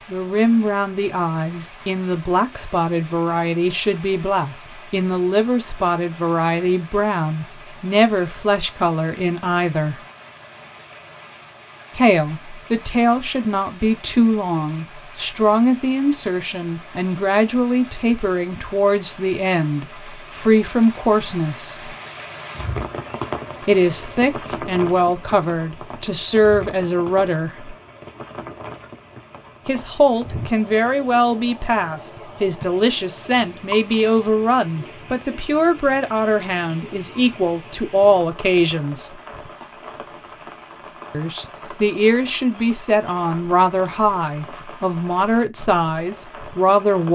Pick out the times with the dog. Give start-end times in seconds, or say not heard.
not heard.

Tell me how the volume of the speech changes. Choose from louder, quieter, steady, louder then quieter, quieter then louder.
steady.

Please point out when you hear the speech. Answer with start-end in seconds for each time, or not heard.
0.1-10.0, 11.9-21.9, 23.6-27.8, 29.6-39.1, 41.1-47.1.